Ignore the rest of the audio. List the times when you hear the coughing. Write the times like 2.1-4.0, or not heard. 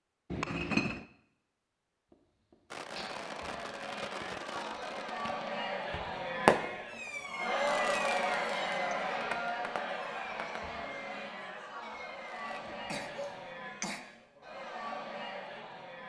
2.1-3.1, 12.5-14.0.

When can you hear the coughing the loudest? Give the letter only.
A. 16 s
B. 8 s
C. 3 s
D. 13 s
D.